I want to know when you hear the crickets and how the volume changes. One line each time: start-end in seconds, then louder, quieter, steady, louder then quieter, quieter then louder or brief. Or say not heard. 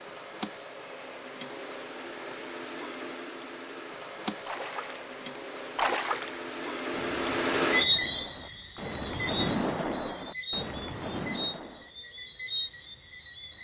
0.0-13.5 louder then quieter.